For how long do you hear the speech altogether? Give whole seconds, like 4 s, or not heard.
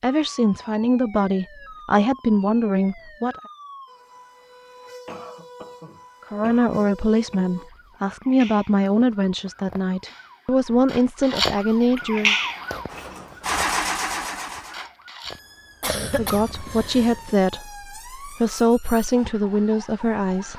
14 s.